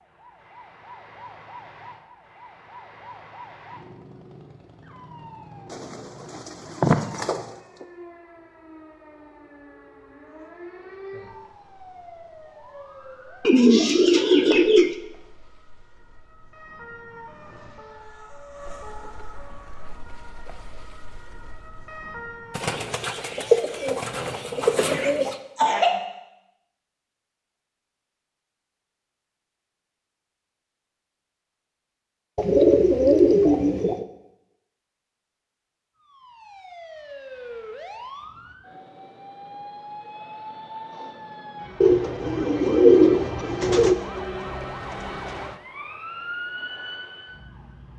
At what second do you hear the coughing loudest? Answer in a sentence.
The loudest moment of the coughing is at 26 seconds.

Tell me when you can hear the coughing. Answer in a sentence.
You can hear the coughing from 24.6 to 26.1 s.